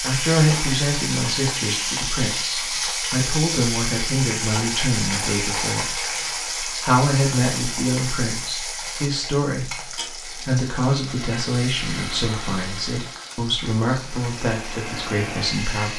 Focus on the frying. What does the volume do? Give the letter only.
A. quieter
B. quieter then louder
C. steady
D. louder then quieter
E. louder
A.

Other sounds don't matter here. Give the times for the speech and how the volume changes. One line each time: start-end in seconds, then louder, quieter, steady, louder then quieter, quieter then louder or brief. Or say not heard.
0.0-15.9 steady.